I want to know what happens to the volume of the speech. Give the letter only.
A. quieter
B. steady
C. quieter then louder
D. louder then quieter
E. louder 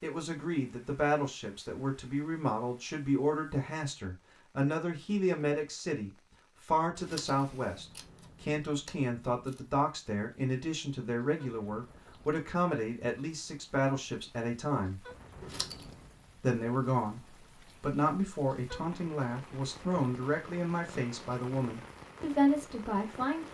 B.